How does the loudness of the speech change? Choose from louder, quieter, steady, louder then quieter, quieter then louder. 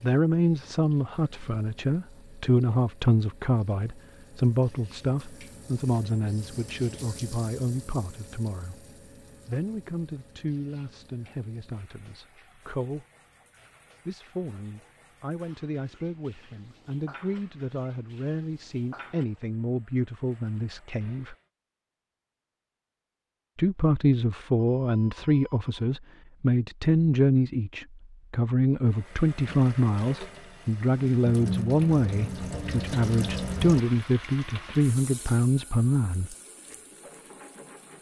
quieter then louder.